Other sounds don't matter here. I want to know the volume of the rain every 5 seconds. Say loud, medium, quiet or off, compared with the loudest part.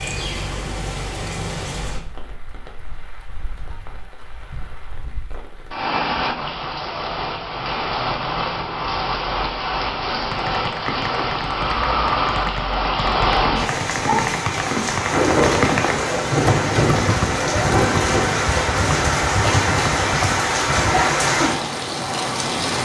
quiet, medium, loud, loud, loud.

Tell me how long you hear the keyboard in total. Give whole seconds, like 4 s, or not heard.
11 s.